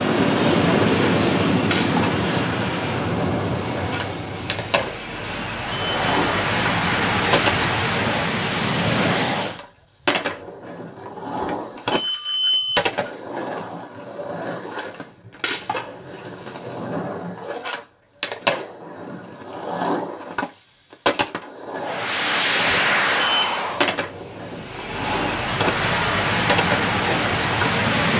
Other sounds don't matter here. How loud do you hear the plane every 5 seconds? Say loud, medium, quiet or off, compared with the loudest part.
loud, loud, off, off, loud, loud.